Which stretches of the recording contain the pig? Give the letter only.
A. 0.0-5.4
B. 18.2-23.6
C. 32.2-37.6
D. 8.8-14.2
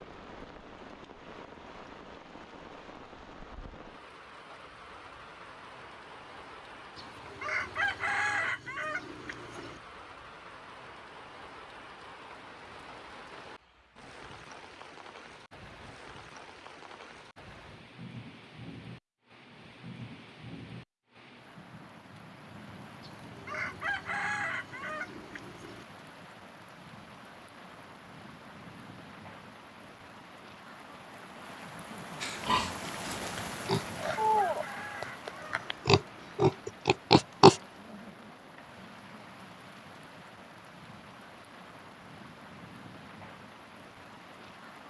C.